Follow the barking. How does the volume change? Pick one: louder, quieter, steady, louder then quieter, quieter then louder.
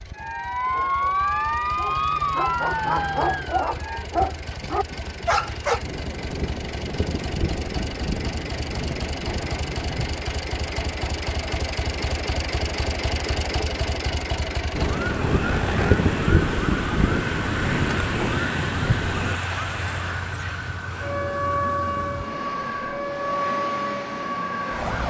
louder.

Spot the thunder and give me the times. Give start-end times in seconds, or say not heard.
5.8-10.2, 14.8-19.4.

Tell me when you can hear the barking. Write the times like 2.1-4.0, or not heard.
0.7-5.8.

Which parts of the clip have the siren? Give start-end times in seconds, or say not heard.
0.0-4.0, 14.8-25.0.